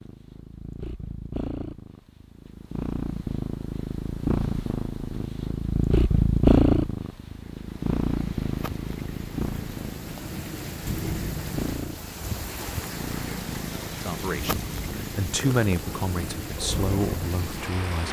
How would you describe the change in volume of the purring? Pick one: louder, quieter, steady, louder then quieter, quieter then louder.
louder then quieter.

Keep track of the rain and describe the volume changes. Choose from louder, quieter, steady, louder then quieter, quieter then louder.
louder.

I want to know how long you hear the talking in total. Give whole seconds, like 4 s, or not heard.
4 s.